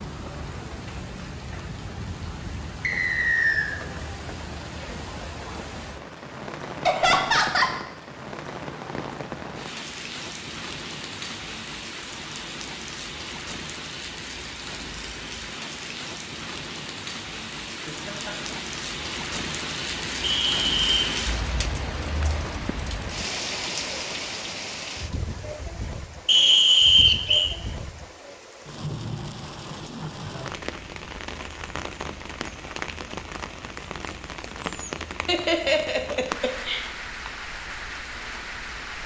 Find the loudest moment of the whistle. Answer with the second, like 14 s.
27 s.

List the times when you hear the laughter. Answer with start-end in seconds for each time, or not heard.
6.8-7.8, 17.9-18.6, 35.2-37.3.